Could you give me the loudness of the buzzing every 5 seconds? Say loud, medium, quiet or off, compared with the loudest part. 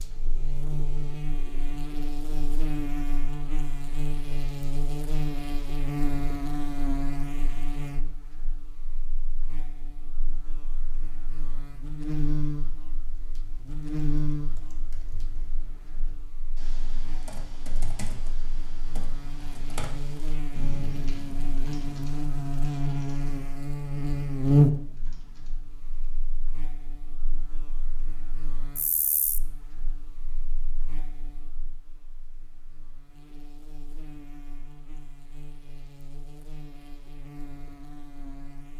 medium, medium, medium, quiet, loud, quiet, quiet, quiet.